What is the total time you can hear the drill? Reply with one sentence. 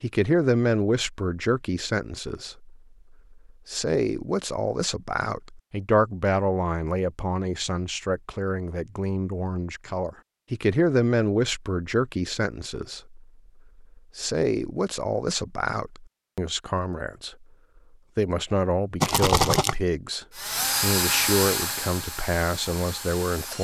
You can hear the drill for 3 seconds altogether.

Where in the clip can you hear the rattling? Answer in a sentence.
The rattling can be heard from 19.0 to 19.8 s.